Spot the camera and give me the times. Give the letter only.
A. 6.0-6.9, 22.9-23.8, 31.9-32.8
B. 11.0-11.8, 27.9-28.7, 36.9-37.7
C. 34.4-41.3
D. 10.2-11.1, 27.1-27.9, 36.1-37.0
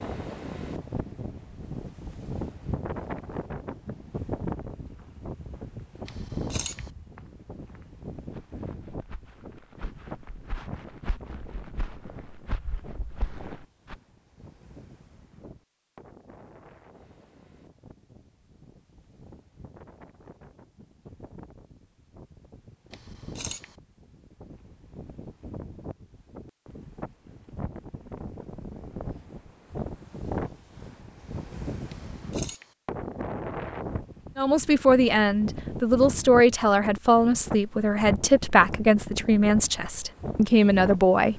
A.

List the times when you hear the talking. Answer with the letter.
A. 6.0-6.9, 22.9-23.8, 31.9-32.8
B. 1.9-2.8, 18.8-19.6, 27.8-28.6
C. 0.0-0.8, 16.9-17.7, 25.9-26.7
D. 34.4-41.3
D.